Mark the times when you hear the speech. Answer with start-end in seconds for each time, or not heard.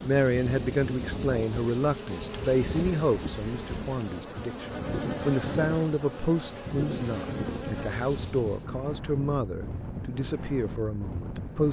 0.1-11.6.